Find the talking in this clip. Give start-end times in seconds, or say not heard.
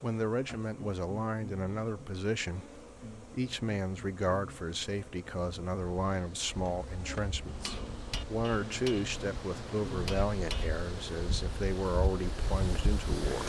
0.0-13.4.